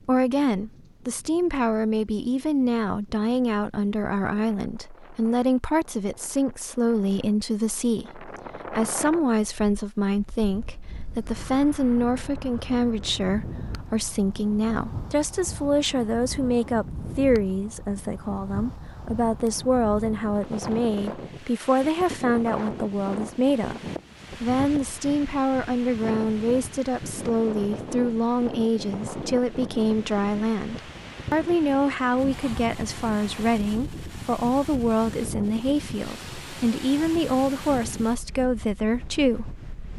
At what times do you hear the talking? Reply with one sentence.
The talking can be heard from 0.1 to 39.6 s.